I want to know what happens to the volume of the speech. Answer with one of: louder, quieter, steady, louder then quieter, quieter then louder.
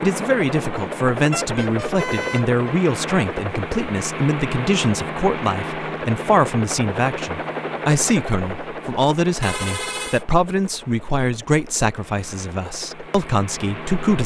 steady.